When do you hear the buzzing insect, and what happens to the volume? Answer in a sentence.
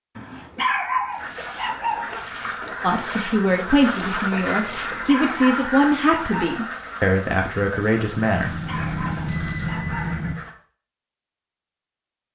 The buzzing insect can't be heard in this clip.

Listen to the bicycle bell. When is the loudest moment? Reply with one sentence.
The volume of the bicycle bell peaks at 10 seconds.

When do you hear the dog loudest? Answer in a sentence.
The loudest moment of the dog is at 1 second.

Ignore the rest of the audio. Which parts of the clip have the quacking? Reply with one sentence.
You can hear the quacking from 1.1 to 10.6 s.